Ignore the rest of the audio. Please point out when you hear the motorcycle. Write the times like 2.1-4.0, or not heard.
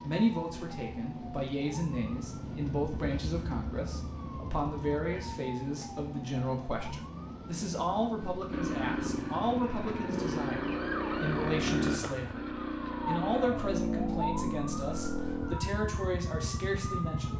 2.1-5.3, 8.5-17.3.